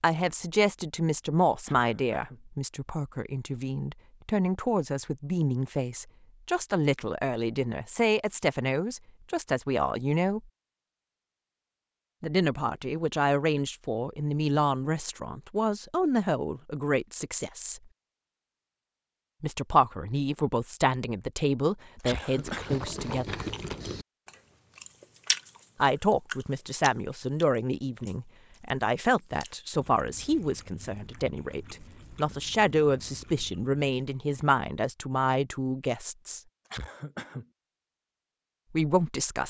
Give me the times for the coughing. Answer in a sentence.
You can hear the coughing from 1.6 to 2.4 s, from 22.0 to 22.8 s and from 36.6 to 37.5 s.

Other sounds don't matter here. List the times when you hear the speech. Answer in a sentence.
The speech can be heard from 0.0 to 10.4 s, from 12.2 to 17.8 s, from 19.4 to 23.5 s, from 25.8 to 36.4 s and from 38.7 to 39.4 s.